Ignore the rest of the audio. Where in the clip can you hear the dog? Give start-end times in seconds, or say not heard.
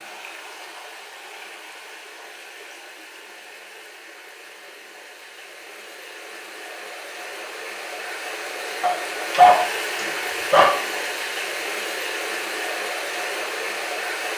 8.8-10.8.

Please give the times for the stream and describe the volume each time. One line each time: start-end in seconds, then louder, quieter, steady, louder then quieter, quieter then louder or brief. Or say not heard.
0.0-14.3 louder.